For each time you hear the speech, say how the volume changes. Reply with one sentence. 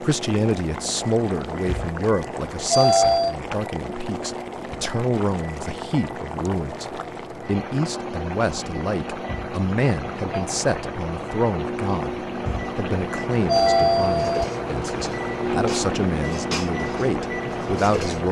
The speech can be heard from 0.0 to 18.2 s, at a steady volume.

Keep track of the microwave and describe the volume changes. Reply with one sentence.
The loudness of the microwave goes up.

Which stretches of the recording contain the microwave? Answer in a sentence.
You can hear the microwave from 0.0 to 18.2 s.